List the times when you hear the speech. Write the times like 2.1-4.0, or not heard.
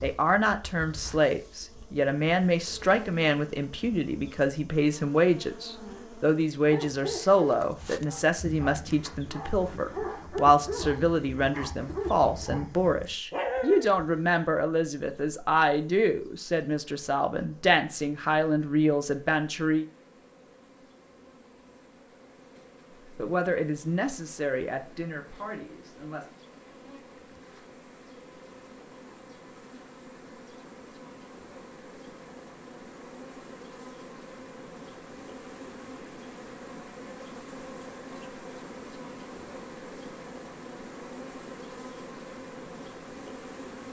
0.0-19.9, 23.1-26.3.